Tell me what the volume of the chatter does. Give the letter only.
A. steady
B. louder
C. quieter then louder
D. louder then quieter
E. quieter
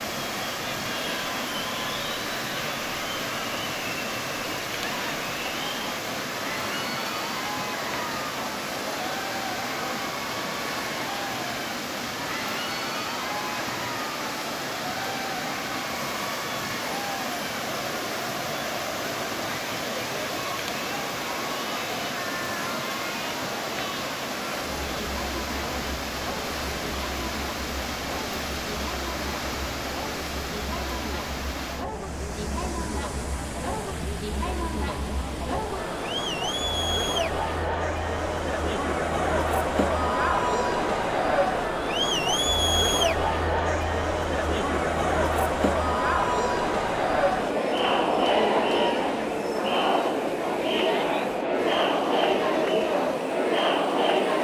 B.